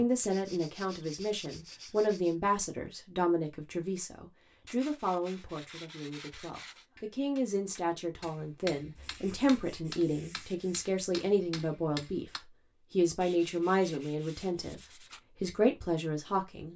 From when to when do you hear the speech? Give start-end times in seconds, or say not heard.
0.0-14.8, 15.4-16.7.